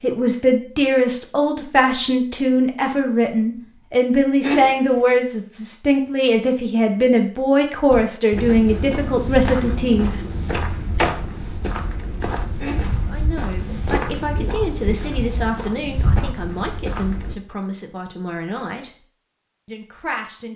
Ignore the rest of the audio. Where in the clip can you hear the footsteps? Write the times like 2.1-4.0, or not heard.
7.9-17.4.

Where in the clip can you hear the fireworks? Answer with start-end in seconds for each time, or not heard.
not heard.